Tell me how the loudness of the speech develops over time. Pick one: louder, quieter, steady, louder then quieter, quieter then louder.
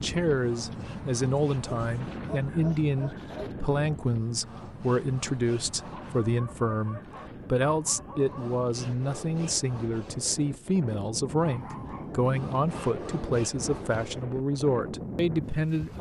steady.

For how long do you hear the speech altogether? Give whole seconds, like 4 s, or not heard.
16 s.